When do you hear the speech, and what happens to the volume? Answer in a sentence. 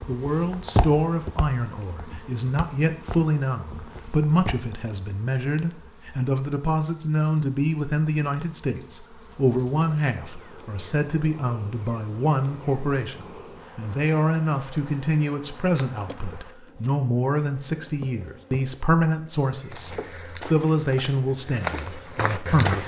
The speech can be heard from 0.1 to 22.8 s, at a steady volume.